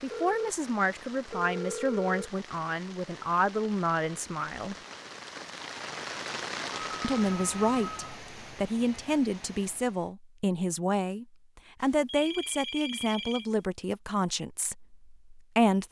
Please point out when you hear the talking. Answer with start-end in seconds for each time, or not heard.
0.0-4.8, 7.0-15.8.